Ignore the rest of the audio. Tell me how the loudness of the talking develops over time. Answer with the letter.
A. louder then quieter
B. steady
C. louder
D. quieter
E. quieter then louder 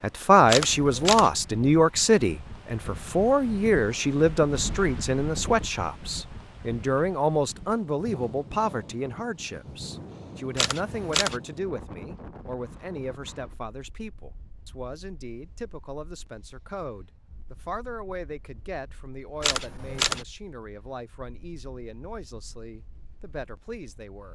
D.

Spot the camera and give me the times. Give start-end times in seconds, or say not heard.
0.5-1.3, 10.6-11.4, 19.4-20.2.